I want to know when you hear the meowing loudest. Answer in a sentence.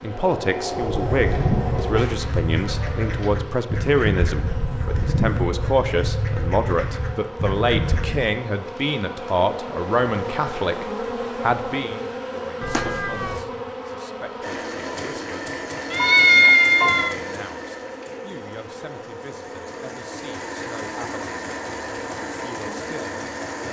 The loudest moment of the meowing is at 16 seconds.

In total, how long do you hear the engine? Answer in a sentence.
You can hear the engine for 9 seconds altogether.